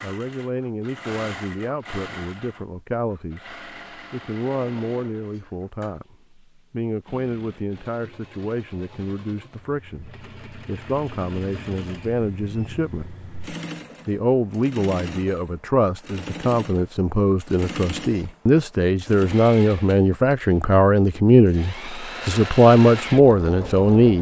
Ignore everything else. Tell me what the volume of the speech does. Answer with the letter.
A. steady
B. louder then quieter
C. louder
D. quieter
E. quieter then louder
C.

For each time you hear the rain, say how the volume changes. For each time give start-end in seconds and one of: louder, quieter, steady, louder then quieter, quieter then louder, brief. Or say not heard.
not heard.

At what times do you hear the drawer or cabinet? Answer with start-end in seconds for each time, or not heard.
not heard.